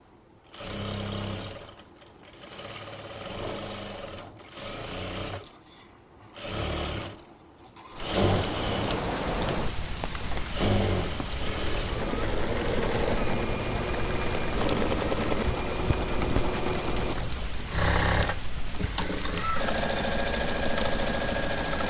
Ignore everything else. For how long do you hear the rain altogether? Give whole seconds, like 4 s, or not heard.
14 s.